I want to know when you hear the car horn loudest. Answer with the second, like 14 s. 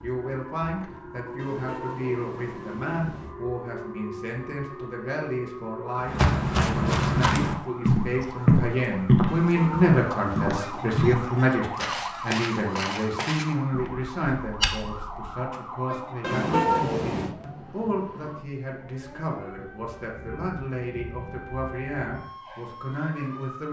17 s.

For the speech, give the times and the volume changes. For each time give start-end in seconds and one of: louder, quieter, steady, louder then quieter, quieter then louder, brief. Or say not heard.
0.0-23.6 louder then quieter.